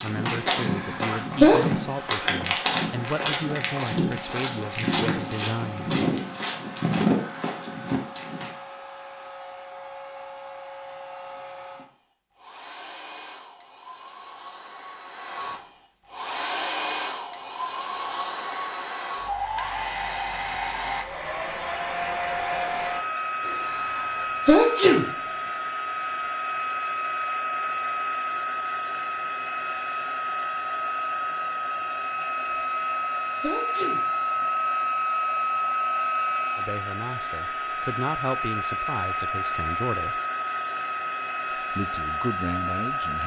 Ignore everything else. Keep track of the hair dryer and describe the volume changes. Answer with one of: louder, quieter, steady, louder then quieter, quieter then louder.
louder.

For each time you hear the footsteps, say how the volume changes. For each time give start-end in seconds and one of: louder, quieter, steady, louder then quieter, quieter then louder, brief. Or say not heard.
0.0-8.5 steady.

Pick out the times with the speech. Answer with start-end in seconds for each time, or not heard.
0.0-5.9, 36.5-40.2, 41.5-43.2.